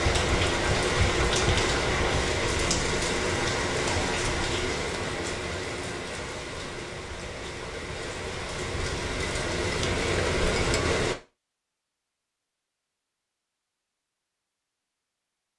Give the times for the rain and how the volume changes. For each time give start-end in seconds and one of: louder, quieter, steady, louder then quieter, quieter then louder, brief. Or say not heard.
0.0-11.2 quieter then louder.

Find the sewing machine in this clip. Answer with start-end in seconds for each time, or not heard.
0.0-2.2.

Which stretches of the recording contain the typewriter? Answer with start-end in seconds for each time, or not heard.
not heard.